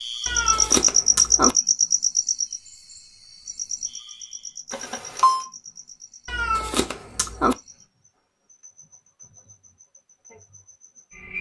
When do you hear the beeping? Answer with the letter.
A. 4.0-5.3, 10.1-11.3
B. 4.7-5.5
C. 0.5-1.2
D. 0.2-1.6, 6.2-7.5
B.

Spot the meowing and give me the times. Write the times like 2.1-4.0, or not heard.
0.2-1.6, 6.2-7.5.